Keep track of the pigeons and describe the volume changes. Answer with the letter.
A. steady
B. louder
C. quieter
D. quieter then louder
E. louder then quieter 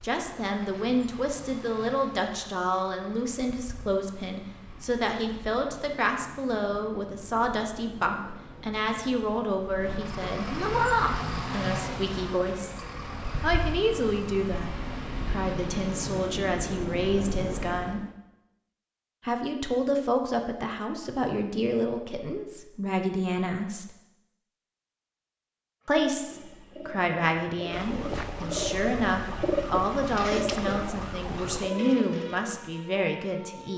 E.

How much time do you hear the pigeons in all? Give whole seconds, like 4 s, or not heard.
7 s.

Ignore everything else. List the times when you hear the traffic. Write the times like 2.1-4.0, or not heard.
0.0-18.1.